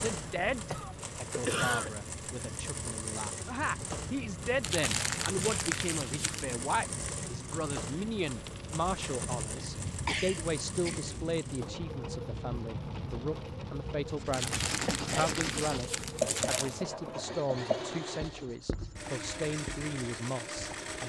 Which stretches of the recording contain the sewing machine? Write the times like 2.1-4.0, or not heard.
0.0-21.0.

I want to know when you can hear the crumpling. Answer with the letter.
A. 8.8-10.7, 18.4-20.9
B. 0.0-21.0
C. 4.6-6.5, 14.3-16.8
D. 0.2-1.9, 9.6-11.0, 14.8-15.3
C.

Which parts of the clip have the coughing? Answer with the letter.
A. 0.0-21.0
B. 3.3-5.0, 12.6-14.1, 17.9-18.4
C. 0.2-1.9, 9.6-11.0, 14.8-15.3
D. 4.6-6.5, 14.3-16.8
C.